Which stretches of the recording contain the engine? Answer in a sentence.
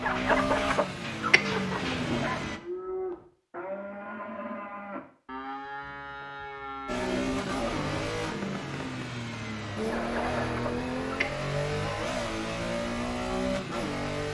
You can hear the engine from 0.0 to 2.6 s and from 6.8 to 14.2 s.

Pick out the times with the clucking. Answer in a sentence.
You can hear the clucking from 0.0 to 2.5 s and from 9.8 to 11.3 s.